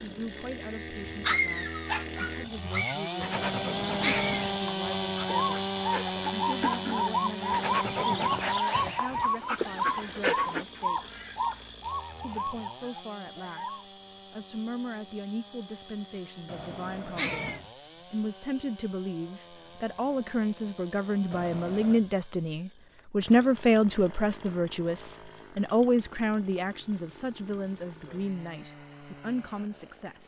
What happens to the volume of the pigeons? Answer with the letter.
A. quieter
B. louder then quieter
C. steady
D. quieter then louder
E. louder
A.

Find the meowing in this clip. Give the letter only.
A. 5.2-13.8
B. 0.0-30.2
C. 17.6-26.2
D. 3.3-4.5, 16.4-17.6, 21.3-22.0
D.